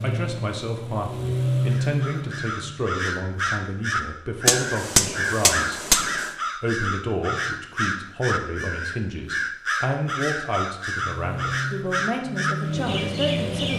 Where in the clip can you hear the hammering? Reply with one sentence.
The hammering can be heard from 4.5 to 6.3 s.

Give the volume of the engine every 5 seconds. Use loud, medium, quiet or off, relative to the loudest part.
loud, off, loud.